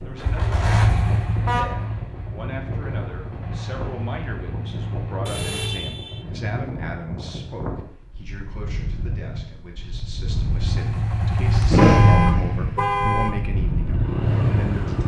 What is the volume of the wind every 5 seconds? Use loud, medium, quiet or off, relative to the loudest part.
medium, medium, loud.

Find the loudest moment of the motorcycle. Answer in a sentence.
The volume of the motorcycle peaks at 12 seconds.